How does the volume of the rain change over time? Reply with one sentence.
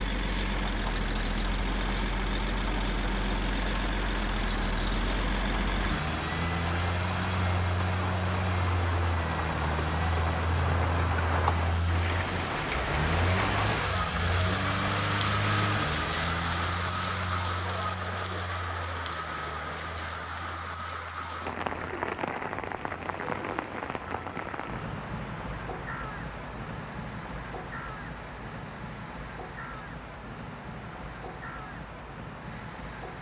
The loudness of the rain goes up, then down.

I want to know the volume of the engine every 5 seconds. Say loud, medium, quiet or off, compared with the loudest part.
loud, loud, loud, loud, quiet, quiet, quiet.